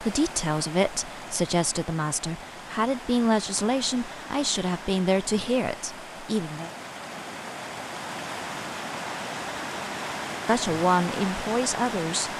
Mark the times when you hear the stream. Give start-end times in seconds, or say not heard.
0.0-12.3.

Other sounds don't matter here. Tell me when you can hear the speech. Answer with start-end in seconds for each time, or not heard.
0.0-6.7, 10.4-12.3.